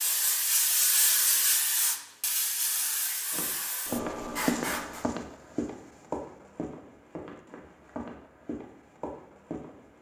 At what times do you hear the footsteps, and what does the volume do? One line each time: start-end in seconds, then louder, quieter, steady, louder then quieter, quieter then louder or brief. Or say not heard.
3.3-9.9 quieter.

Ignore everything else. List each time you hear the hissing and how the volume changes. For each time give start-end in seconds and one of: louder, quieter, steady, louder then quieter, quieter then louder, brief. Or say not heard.
0.0-5.0 quieter.